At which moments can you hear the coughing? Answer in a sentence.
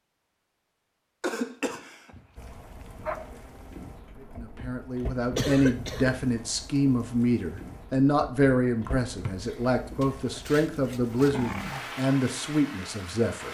The coughing can be heard from 1.2 to 2.1 s, from 5.3 to 6.2 s and from 9.3 to 10.5 s.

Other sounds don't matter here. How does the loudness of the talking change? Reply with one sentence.
The loudness of the talking stays about the same.